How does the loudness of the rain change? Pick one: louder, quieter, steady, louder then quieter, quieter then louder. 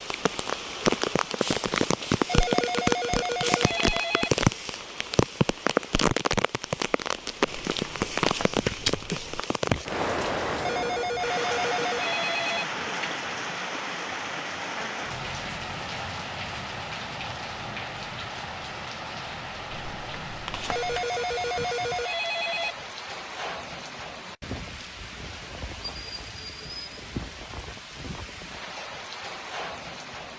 quieter.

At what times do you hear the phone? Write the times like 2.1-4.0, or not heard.
2.2-4.3, 10.6-12.7, 20.7-22.8.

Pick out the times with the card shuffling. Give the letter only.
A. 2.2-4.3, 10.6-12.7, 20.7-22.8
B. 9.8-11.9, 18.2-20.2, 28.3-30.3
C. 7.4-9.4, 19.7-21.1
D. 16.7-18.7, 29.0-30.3
C.